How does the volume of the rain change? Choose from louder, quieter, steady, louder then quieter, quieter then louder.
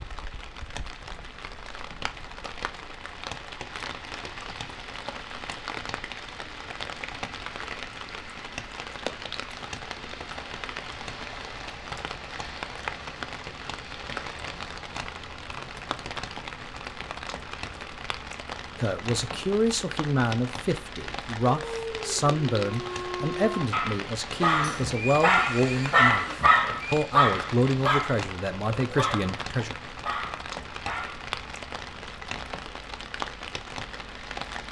steady.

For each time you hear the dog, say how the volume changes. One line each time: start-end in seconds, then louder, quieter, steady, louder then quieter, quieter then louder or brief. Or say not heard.
21.6-29.4 louder then quieter
30.0-31.2 brief.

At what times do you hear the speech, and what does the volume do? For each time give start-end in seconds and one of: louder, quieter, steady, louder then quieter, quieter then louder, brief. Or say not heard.
18.8-29.8 steady.